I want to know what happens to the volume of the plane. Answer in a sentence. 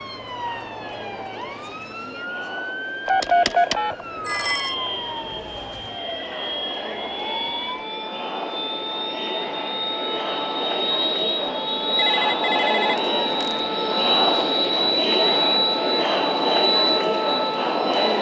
The loudness of the plane goes up.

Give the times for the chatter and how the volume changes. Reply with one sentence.
You can hear the chatter from 0.0 to 18.1 s, getting louder.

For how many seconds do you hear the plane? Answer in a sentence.
You can hear the plane for 14 seconds altogether.